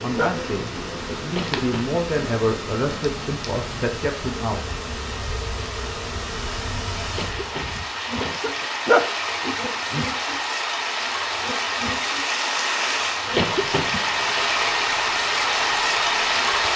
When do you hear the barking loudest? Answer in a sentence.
The volume of the barking peaks at 9 seconds.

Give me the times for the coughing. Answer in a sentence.
You can hear the coughing from 1.2 to 2.0 s, from 7.0 to 8.7 s and from 13.2 to 14.0 s.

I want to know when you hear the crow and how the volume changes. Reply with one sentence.
You can't hear the crow here.